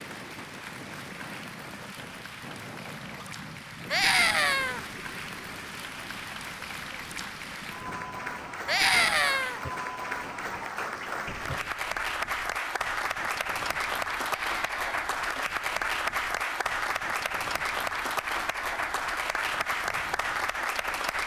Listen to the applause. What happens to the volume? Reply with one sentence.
The loudness of the applause goes up.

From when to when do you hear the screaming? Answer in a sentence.
The screaming can be heard from 3.9 to 4.8 s, from 8.7 to 9.6 s and from 14.2 to 14.9 s.